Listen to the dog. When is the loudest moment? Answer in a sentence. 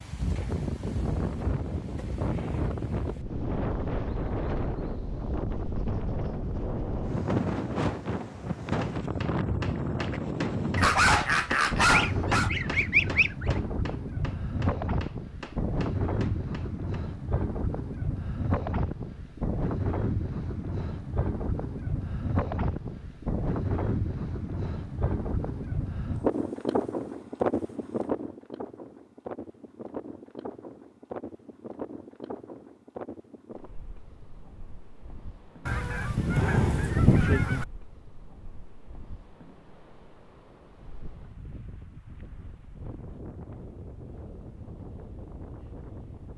The volume of the dog peaks at 11 seconds.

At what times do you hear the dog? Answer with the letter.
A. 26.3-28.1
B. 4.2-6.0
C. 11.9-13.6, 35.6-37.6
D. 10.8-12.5
D.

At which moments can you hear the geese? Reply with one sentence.
You can hear the geese from 11.9 to 13.6 s and from 35.6 to 37.6 s.